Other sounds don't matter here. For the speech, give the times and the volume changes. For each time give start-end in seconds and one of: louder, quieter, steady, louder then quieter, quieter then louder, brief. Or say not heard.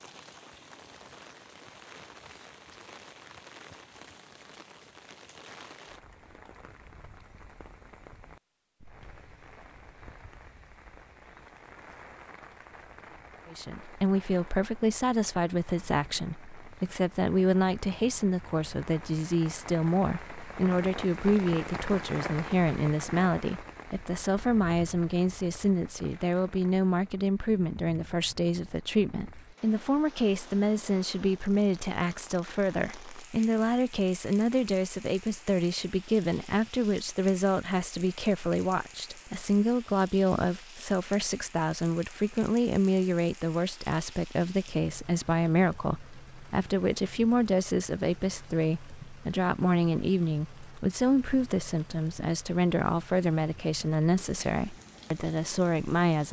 13.5-56.2 steady.